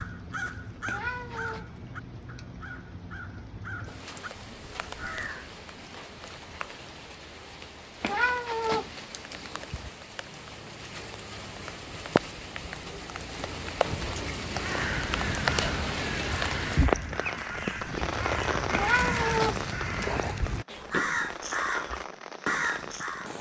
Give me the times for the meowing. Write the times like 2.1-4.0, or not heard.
0.8-1.6, 8.0-9.9, 18.7-20.3.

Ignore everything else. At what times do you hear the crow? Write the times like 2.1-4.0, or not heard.
0.0-5.7, 14.5-23.3.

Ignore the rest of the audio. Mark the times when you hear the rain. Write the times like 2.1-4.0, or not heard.
0.0-23.3.